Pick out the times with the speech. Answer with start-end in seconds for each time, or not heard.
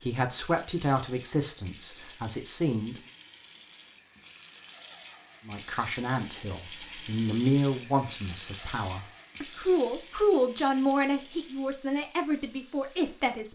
0.0-3.0, 5.5-13.5.